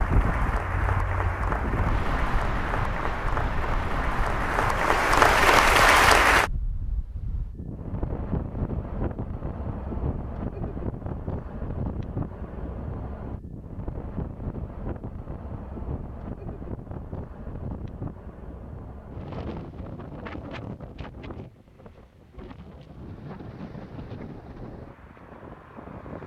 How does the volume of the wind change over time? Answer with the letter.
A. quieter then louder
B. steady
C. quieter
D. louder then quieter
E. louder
C.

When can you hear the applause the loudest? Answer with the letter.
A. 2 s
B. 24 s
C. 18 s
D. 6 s
D.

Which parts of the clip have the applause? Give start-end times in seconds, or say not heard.
0.0-6.5.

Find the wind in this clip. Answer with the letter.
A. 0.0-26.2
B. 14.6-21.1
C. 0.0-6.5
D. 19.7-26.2
A.